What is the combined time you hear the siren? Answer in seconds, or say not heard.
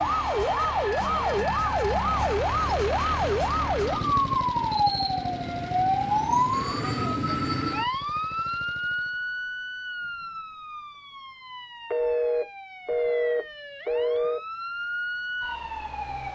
16 s.